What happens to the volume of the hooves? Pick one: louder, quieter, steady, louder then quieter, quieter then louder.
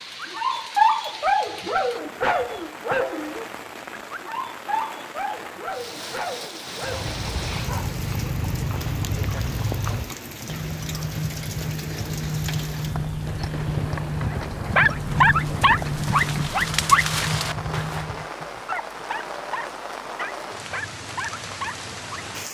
steady.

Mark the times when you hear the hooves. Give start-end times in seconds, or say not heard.
6.8-18.3.